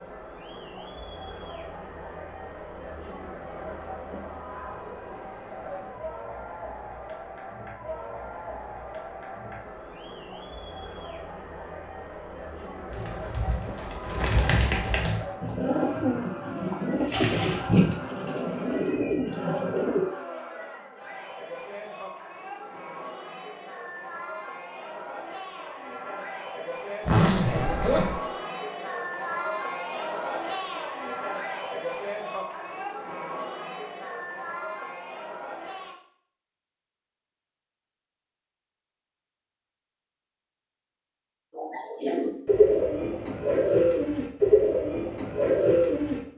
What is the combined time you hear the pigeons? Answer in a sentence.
The pigeons can be heard for 12 seconds in total.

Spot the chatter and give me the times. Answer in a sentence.
You can hear the chatter from 0.0 to 36.0 s.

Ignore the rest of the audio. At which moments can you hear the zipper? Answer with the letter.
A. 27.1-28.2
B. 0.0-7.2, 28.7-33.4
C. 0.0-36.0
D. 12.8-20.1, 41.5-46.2
A.